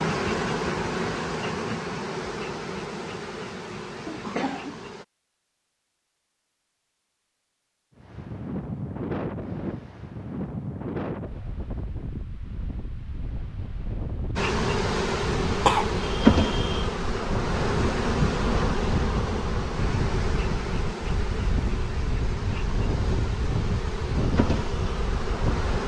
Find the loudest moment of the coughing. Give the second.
16 s.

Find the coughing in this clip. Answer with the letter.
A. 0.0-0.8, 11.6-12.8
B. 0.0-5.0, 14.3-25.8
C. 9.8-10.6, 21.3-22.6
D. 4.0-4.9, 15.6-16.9
D.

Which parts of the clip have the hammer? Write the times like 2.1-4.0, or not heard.
not heard.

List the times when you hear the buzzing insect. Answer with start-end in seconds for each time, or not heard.
0.0-5.0, 14.3-25.8.